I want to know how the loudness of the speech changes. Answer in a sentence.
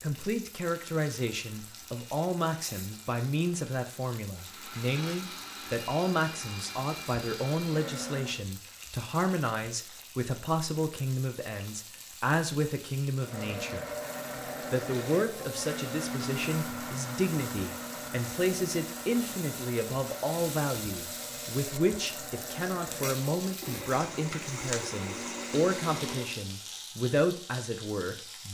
The loudness of the speech stays about the same.